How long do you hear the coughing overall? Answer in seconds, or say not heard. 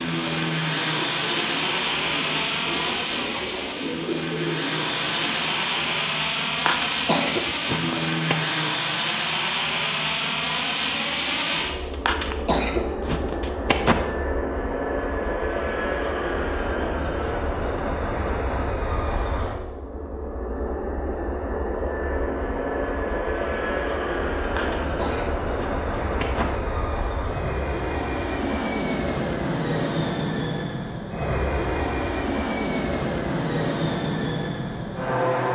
6 s.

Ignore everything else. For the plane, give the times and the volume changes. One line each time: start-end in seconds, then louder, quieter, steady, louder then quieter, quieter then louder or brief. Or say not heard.
0.0-35.5 steady.